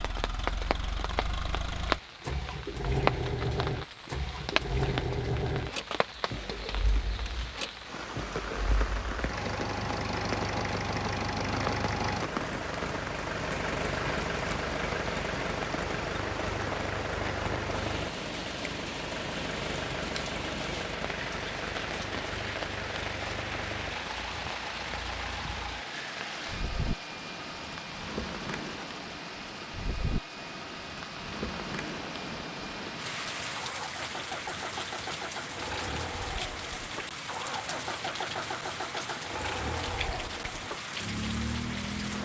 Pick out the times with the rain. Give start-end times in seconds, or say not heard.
0.0-42.1.